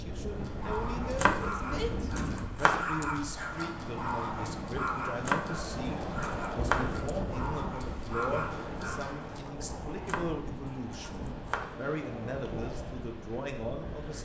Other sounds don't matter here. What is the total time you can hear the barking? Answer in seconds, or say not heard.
9 s.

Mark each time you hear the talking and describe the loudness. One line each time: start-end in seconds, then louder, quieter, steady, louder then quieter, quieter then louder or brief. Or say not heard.
0.0-14.1 steady.